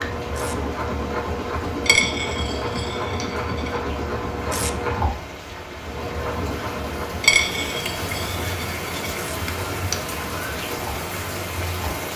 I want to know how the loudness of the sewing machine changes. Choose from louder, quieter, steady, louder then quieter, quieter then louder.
quieter.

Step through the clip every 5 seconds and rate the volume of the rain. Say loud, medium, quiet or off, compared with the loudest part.
medium, loud, loud.